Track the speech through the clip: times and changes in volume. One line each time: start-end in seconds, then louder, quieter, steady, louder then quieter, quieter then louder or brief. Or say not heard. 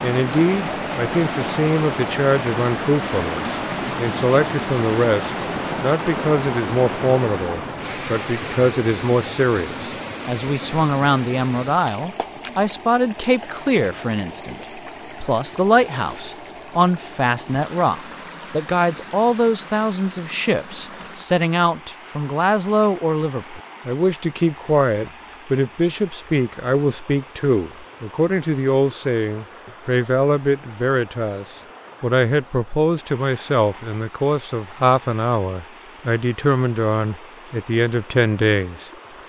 0.0-38.9 steady.